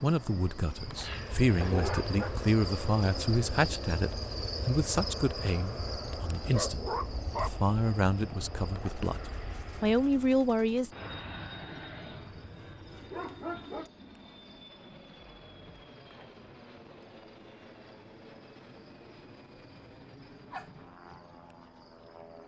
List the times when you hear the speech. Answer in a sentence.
You can hear the speech from 0.0 to 10.9 s.